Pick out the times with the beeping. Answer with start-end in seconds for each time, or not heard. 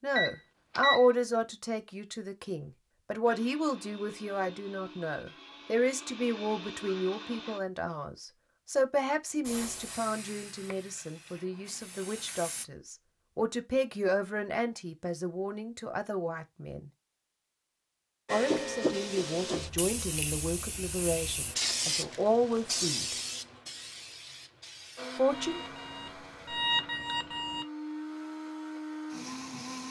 0.1-1.1, 25.3-27.6.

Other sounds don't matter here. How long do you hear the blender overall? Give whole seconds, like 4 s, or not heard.
9 s.